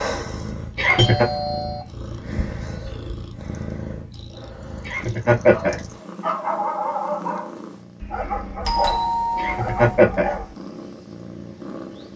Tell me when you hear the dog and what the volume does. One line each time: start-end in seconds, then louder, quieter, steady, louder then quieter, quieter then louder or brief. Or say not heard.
5.5-10.6 quieter.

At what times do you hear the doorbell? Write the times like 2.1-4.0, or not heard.
0.8-1.9, 8.7-10.1.